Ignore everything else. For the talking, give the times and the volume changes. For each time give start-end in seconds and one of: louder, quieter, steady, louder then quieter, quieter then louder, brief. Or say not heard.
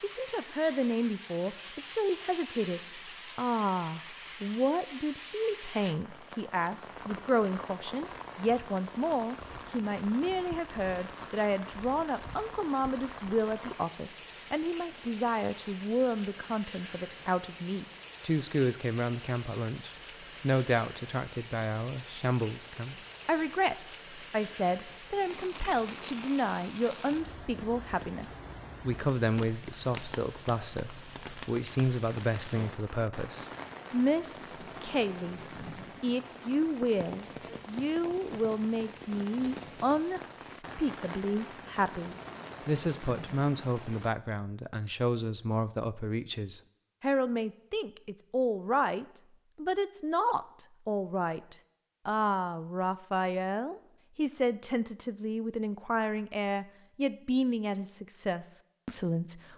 0.0-35.4 steady
36.0-59.5 steady.